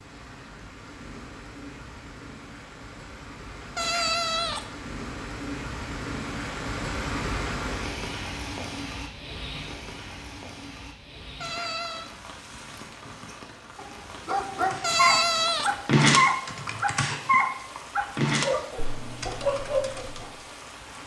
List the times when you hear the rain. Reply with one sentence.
The rain can be heard from 0.0 to 21.0 s.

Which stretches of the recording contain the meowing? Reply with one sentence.
You can hear the meowing from 3.8 to 4.7 s, from 11.4 to 12.1 s and from 14.8 to 15.8 s.